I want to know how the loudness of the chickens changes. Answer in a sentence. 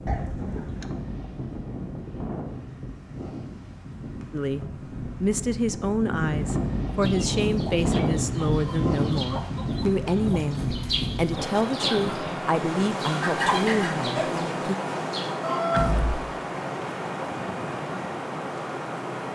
The volume of the chickens goes up.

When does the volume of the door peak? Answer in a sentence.
The loudest moment of the door is at 16 seconds.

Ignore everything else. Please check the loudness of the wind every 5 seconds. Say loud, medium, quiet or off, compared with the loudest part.
medium, loud, loud, loud.